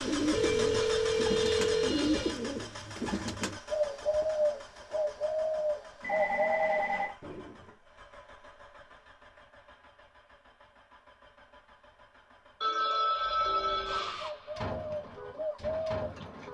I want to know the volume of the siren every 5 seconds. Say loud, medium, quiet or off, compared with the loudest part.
off, off, loud, loud.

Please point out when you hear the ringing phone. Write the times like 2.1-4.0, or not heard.
0.3-2.4, 6.0-7.2, 12.6-14.2.